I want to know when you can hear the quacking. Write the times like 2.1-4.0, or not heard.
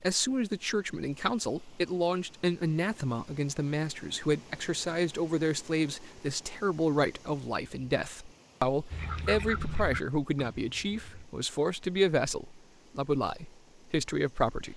8.9-11.3.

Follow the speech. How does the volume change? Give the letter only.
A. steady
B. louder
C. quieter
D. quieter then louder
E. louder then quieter
A.